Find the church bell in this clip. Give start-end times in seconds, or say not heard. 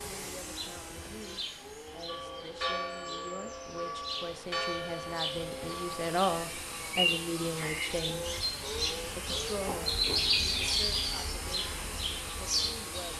2.0-6.2.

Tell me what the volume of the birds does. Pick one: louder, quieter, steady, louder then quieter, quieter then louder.
louder.